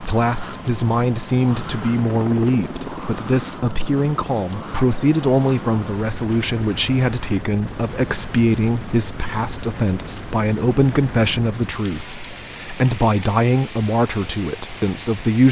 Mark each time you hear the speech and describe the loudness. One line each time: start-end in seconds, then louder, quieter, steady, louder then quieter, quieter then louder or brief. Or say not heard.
0.0-15.4 steady.